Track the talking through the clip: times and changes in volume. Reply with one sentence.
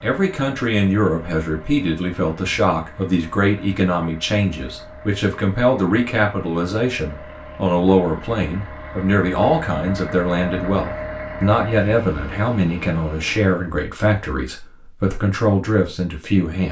You can hear the talking from 0.0 to 16.6 s, at a steady volume.